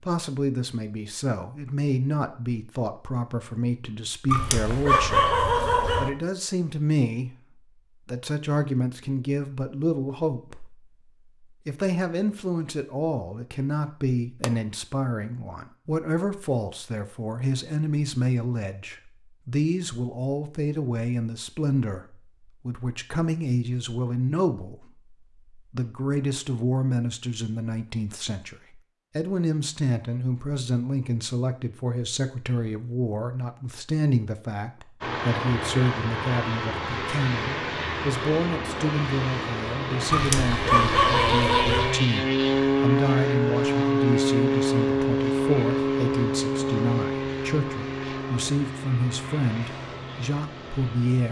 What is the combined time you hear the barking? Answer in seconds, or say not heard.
4 s.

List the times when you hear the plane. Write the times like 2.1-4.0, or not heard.
35.0-51.2.